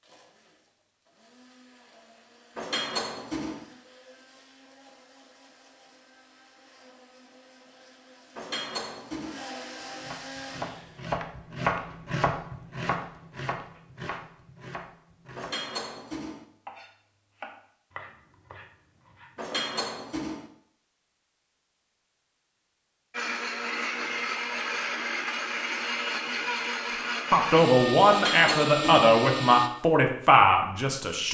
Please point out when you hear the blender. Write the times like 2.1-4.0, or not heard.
0.0-11.2, 23.1-29.7.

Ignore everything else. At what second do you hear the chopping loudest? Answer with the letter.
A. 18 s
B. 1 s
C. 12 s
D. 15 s
C.